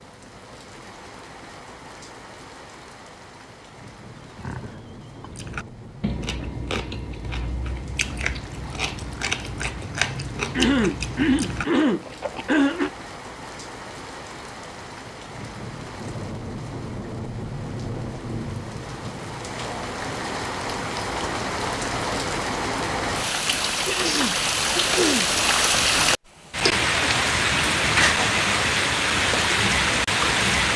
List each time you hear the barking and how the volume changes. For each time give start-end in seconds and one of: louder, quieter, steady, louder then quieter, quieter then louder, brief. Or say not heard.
not heard.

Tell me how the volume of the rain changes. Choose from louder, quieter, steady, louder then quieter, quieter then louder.
louder.